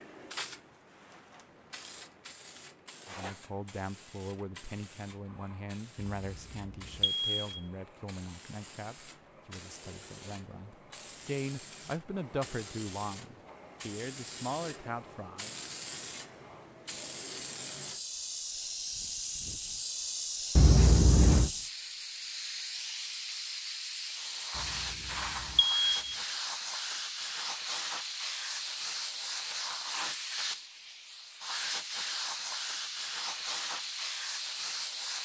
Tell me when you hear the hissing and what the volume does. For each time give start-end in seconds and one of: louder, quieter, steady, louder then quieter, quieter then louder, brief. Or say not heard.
0.0-35.2 louder.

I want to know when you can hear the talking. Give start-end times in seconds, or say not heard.
3.0-15.6.